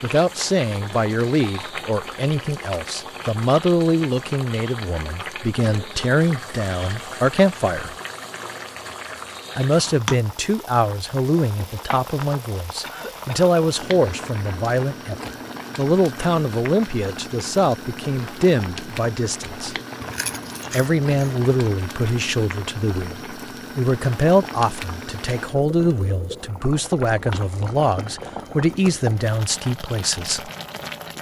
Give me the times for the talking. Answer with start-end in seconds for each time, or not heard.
0.0-8.0, 9.6-19.8, 20.7-30.5.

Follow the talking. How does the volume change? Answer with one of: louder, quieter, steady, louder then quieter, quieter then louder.
steady.